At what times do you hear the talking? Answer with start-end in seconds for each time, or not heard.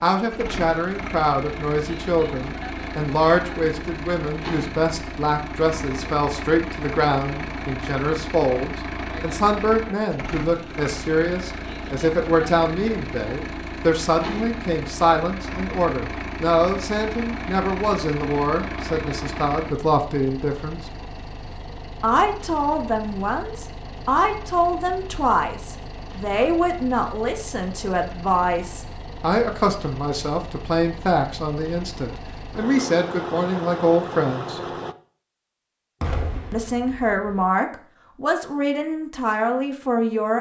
0.0-20.9, 22.0-34.7, 36.5-40.3.